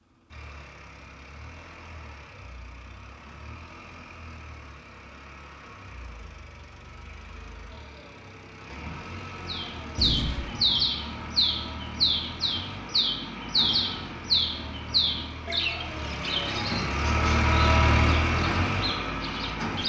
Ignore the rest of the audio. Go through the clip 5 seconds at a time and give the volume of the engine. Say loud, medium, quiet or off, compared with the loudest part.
quiet, quiet, quiet, loud.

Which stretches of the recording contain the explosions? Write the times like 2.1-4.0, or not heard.
9.9-10.8.